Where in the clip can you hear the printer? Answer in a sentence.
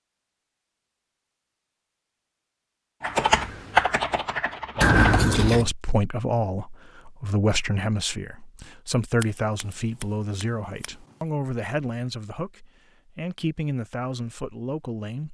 You can't hear the printer here.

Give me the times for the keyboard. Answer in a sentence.
You can hear the keyboard from 3.0 to 5.3 s.